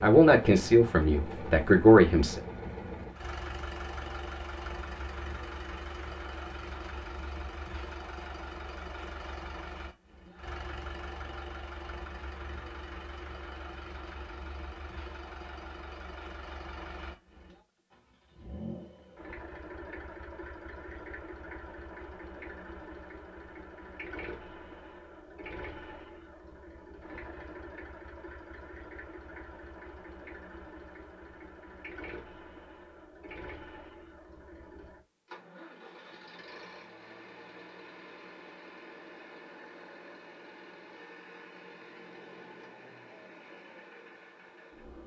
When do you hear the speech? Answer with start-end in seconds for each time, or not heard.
0.0-2.4.